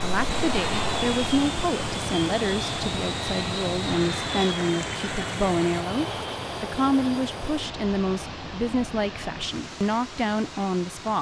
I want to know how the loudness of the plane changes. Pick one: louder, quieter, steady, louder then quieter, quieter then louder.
quieter.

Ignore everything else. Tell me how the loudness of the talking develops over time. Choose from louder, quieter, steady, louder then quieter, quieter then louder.
steady.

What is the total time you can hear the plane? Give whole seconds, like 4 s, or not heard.
11 s.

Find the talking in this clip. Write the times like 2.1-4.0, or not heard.
0.0-11.1.